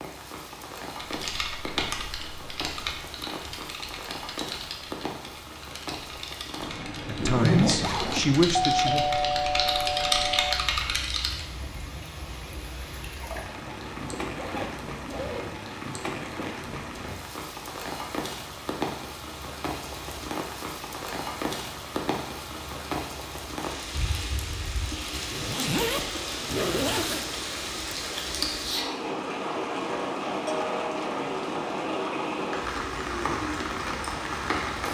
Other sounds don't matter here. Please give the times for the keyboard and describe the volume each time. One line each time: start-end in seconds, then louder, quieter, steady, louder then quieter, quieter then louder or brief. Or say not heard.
0.9-11.4 quieter then louder.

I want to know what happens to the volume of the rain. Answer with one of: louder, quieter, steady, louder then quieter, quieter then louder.
louder.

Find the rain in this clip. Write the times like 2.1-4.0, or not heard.
0.0-34.8.